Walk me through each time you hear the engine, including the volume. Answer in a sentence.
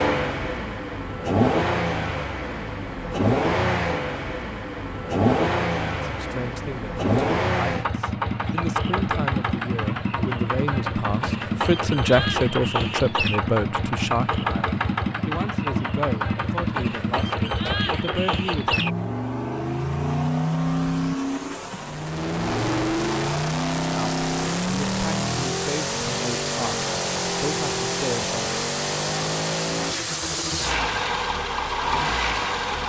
You can hear the engine from 0.0 to 32.8 s, at a steady volume.